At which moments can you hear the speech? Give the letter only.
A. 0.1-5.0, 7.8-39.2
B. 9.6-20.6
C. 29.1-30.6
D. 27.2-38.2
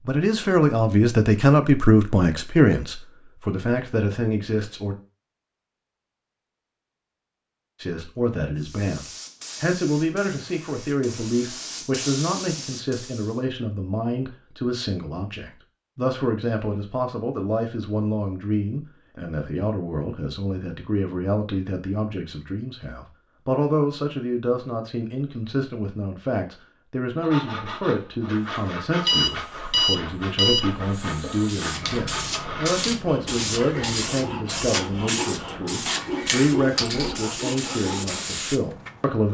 A.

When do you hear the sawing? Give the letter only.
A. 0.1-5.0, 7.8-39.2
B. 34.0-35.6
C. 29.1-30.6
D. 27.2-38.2
D.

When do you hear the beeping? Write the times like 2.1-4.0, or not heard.
29.1-30.6.